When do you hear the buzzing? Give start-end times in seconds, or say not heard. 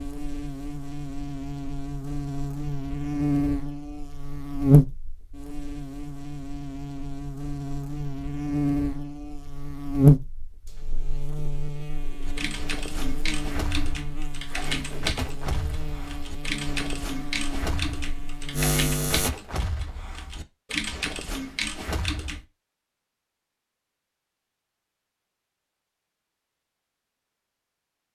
0.0-19.3.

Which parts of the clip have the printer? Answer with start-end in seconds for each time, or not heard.
not heard.